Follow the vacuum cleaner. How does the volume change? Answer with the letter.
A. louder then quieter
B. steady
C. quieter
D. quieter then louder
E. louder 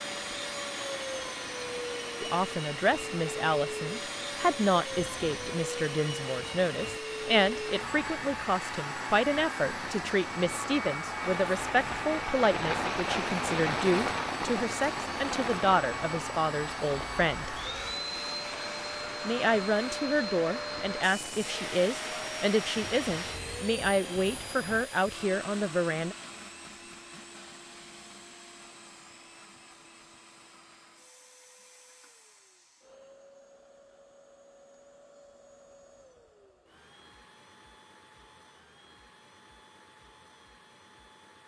C.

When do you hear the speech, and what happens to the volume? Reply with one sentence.
You can hear the speech from 2.2 to 17.6 s, at a steady volume; and from 19.2 to 26.1 s, at a steady volume.